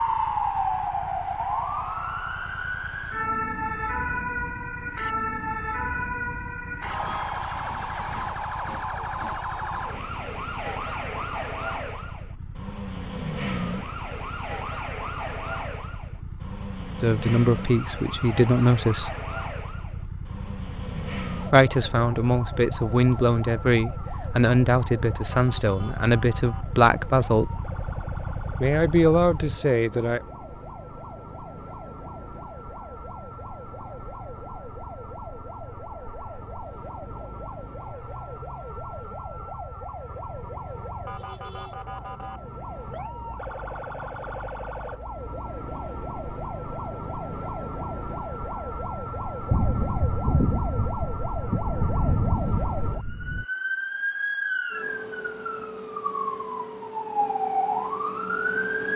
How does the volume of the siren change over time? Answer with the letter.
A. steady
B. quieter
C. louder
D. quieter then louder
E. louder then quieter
D.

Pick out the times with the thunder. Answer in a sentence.
The thunder can be heard from 49.5 to 53.5 s.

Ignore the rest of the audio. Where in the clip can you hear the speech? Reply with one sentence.
You can hear the speech from 17.0 to 19.1 s, from 21.5 to 27.5 s and from 28.6 to 30.2 s.